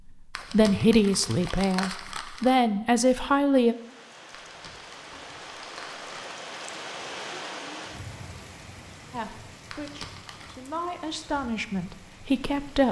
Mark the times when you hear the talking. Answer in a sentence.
You can hear the talking from 0.1 to 3.8 s and from 9.1 to 12.8 s.